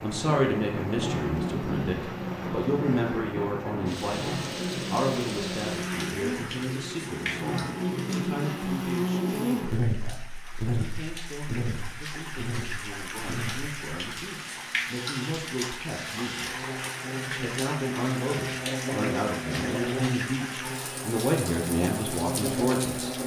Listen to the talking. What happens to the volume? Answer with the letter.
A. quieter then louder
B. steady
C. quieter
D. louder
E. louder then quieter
A.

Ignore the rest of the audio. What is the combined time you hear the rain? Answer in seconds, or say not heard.
23 s.